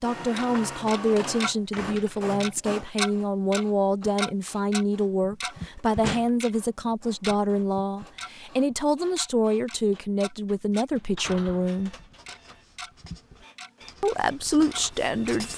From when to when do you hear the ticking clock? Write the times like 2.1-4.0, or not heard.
0.1-1.6, 2.4-15.3.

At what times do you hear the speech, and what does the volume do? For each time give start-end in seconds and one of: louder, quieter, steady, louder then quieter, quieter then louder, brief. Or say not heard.
0.0-11.9 steady
14.0-15.5 brief.